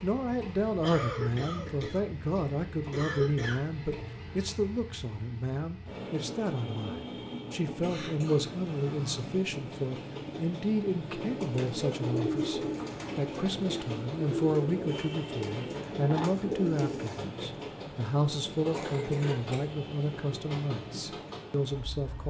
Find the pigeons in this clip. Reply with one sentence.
The pigeons can be heard from 11.1 to 17.2 s.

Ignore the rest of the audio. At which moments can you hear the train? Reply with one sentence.
You can hear the train from 0.0 to 22.2 s.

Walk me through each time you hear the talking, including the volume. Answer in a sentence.
You can hear the talking from 0.0 to 22.2 s, at a steady volume.